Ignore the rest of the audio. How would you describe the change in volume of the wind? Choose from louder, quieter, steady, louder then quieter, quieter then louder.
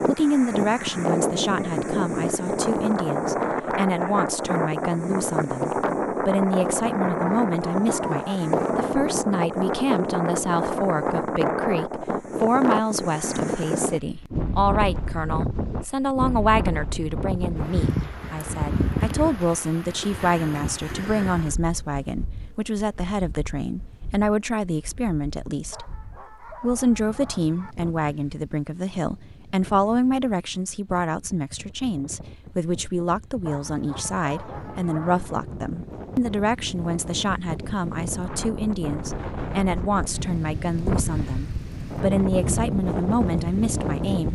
quieter then louder.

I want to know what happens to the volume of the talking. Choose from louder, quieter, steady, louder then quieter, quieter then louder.
steady.